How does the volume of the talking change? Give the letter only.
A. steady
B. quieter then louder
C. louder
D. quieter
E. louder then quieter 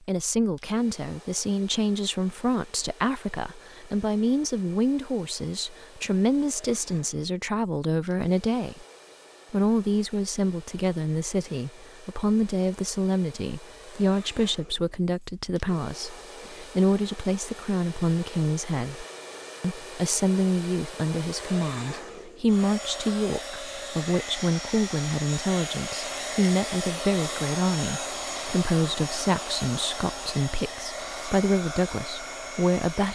A.